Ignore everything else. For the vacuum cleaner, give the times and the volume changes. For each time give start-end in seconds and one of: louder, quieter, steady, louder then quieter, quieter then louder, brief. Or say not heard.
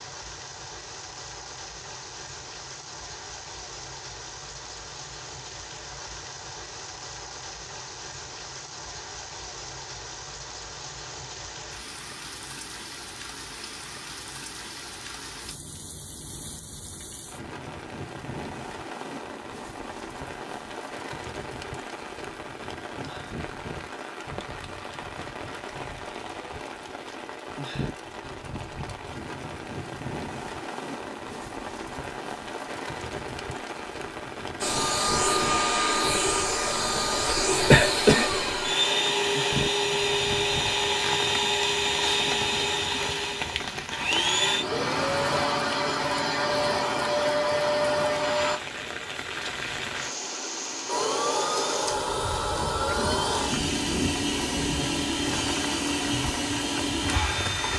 34.6-48.6 steady
50.9-57.7 steady.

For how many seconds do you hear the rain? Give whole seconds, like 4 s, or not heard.
58 s.